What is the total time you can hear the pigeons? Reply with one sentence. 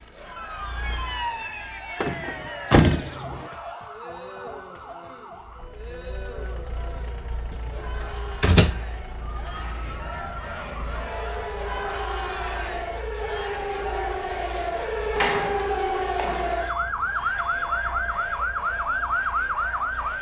You can't hear the pigeons here.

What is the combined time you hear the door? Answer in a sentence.
You can hear the door for 5 seconds altogether.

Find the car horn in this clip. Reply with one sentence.
You can hear the car horn from 11.1 to 11.9 s.